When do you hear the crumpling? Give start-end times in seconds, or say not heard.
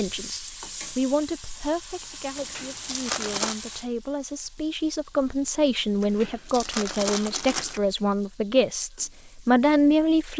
2.4-3.5, 6.0-7.8.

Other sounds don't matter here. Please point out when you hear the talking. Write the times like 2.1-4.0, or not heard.
0.0-10.3.